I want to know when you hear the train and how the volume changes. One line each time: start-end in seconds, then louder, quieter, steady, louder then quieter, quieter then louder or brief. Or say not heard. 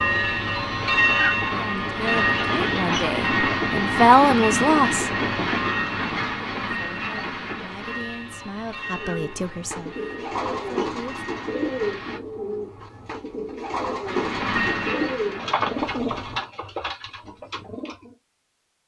0.0-12.2 quieter
14.1-16.4 brief.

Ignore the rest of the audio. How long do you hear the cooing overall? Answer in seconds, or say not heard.
9 s.